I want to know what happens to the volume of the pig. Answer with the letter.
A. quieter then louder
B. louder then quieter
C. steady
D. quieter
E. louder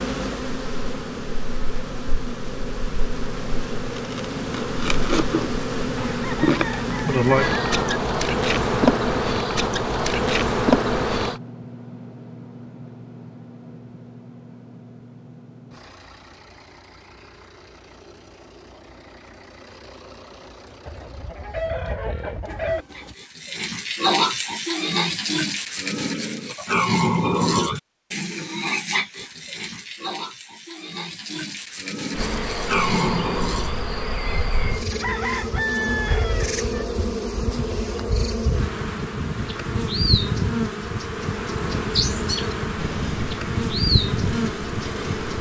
A.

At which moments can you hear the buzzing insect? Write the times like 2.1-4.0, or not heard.
0.0-11.4, 32.1-45.3.